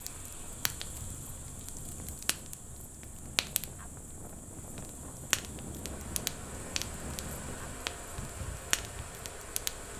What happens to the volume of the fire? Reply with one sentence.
The volume of the fire goes up.